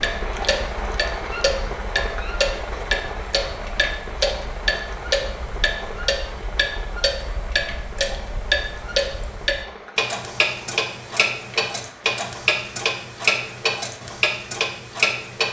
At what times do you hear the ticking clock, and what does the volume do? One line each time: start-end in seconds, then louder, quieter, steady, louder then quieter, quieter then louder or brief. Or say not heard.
0.0-15.4 steady.